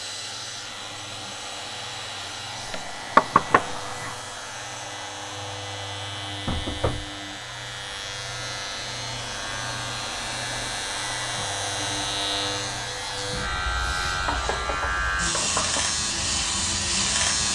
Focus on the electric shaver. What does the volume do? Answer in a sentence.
The loudness of the electric shaver goes up.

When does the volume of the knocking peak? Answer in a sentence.
The loudest moment of the knocking is at 3 seconds.